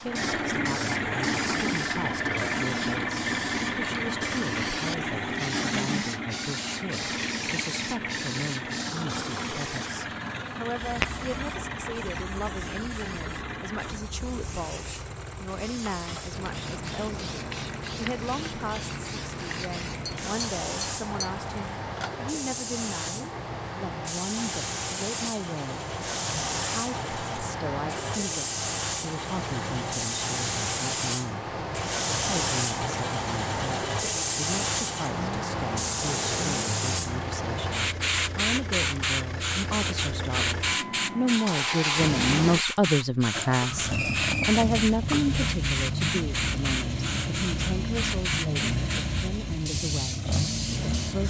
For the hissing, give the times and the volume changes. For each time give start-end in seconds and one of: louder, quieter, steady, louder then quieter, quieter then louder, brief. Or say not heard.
0.0-51.2 louder.